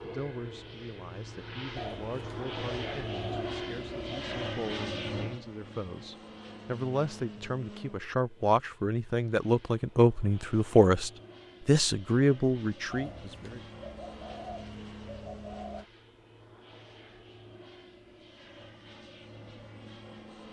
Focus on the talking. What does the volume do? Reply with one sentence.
The volume of the talking goes up.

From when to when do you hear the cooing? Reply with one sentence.
You can hear the cooing from 1.8 to 4.3 s and from 12.9 to 15.8 s.